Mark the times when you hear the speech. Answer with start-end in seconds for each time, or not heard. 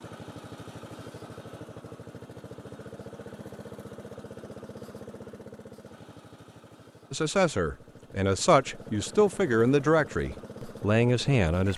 7.1-11.7.